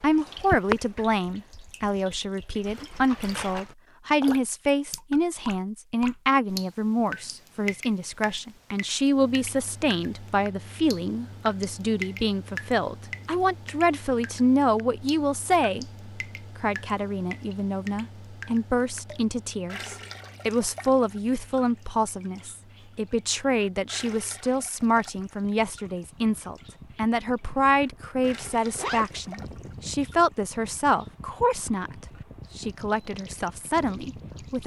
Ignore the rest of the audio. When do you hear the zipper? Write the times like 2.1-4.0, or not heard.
28.6-29.3.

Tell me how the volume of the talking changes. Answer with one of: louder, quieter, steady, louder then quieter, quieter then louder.
steady.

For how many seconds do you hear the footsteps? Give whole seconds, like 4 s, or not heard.
not heard.